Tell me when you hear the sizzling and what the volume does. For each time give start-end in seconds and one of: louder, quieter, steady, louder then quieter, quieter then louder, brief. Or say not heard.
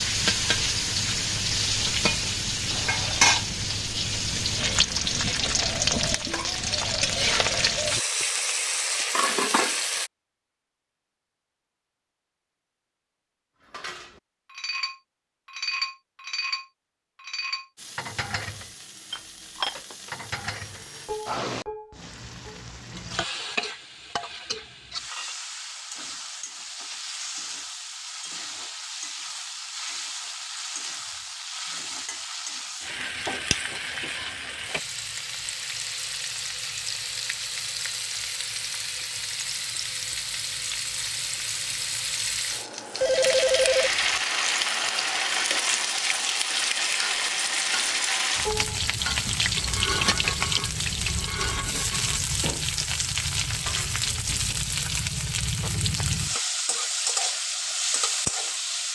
0.0-10.1 steady
17.8-58.9 louder.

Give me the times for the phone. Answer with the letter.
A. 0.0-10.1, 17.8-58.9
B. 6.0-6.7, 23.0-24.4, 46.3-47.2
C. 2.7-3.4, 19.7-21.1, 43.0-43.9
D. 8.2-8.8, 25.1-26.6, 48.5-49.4
C.